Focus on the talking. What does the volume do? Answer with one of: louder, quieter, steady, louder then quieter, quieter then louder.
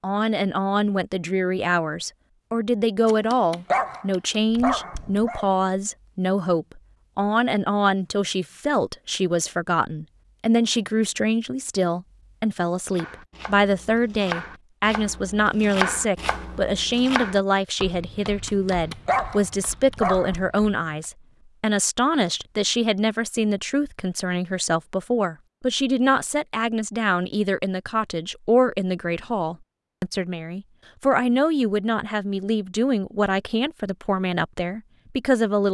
steady.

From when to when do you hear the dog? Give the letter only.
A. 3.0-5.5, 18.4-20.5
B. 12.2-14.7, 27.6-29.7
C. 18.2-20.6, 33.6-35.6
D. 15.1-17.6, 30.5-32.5
A.